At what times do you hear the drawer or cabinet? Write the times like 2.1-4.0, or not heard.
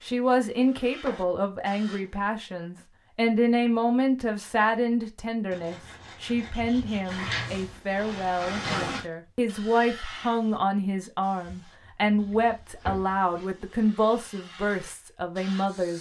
0.6-2.1, 7.0-9.1, 11.4-13.2.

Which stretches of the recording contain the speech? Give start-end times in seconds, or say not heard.
0.0-15.9.